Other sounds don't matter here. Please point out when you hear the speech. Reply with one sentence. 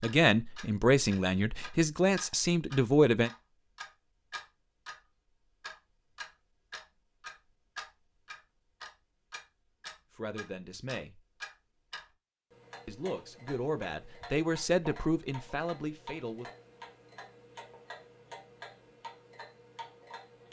You can hear the speech from 0.0 to 3.3 s, from 10.1 to 11.2 s and from 12.8 to 16.4 s.